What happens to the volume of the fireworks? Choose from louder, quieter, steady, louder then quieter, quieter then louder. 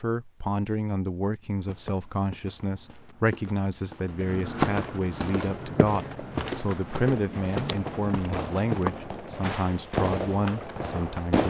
louder.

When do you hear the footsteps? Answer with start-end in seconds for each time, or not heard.
1.6-9.2.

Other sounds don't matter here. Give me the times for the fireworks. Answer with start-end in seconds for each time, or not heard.
5.3-11.4.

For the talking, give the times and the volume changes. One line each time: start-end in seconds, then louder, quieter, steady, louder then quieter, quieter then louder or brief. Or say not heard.
0.0-11.4 steady.